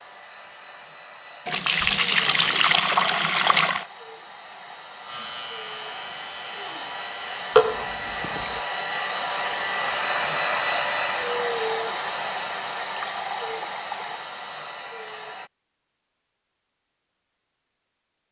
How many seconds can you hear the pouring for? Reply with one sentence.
You can hear the pouring for 5 seconds altogether.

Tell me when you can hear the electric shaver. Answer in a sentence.
The electric shaver can be heard from 5.0 to 7.3 s.